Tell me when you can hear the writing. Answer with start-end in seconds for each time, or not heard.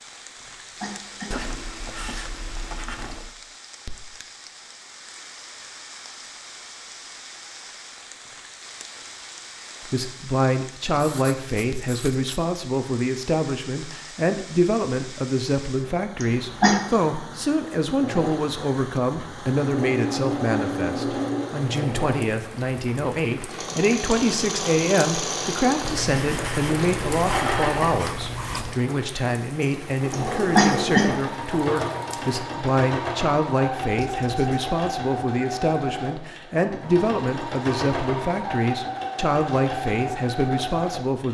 1.3-3.4, 10.9-12.4, 25.8-28.8, 34.0-34.6.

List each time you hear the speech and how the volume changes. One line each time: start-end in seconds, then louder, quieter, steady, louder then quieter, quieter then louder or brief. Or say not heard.
9.8-41.2 steady.